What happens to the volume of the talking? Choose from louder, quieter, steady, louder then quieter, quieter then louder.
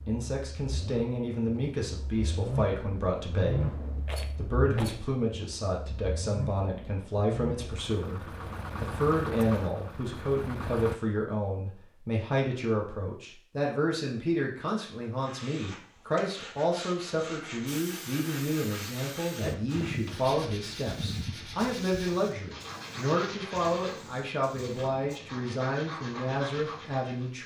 steady.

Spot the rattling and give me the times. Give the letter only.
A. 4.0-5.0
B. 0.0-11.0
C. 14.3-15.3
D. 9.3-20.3
A.